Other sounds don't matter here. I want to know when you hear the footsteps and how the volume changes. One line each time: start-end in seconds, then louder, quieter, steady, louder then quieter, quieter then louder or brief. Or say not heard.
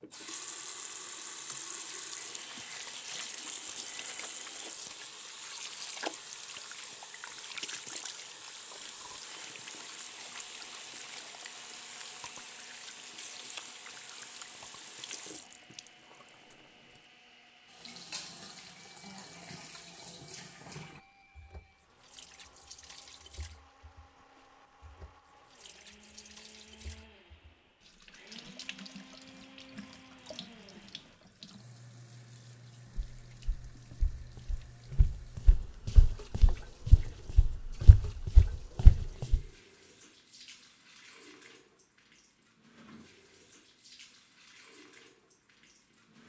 33.0-39.4 louder.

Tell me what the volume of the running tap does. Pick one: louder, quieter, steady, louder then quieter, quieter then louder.
quieter.